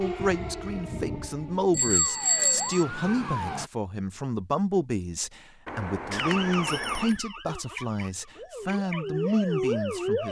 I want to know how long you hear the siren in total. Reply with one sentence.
The siren can be heard for 8 seconds in total.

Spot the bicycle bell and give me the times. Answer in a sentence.
The bicycle bell can be heard from 1.7 to 2.9 s and from 5.7 to 7.2 s.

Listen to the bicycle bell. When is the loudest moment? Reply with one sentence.
The loudest moment of the bicycle bell is at 2 seconds.